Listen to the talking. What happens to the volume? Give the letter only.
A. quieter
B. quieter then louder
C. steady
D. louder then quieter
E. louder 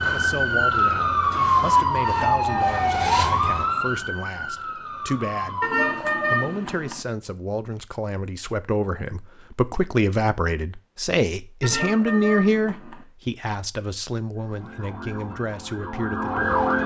D.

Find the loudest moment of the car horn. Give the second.
6 s.